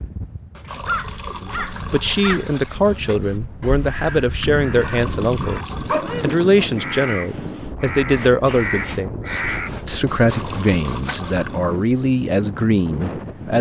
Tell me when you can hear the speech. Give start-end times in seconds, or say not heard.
1.2-13.5.